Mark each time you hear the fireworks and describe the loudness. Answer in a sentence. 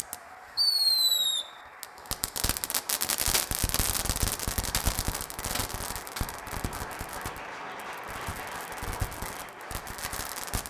You can hear the fireworks from 0.0 to 10.6 s, getting quieter.